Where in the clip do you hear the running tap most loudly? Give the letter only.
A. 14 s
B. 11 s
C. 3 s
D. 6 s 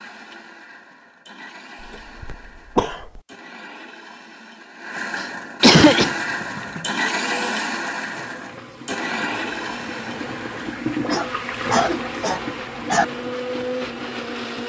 B.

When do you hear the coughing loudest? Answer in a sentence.
The volume of the coughing peaks at 6 seconds.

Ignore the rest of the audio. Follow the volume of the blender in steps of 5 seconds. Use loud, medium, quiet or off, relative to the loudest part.
quiet, loud, medium.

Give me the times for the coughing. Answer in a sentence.
You can hear the coughing from 2.2 to 3.2 s, from 5.2 to 6.2 s and from 11.1 to 13.1 s.